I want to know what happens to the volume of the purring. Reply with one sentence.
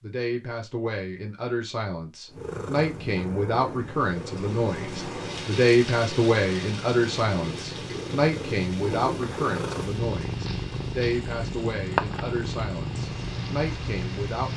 The loudness of the purring goes up.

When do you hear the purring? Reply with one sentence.
The purring can be heard from 2.3 to 14.5 s.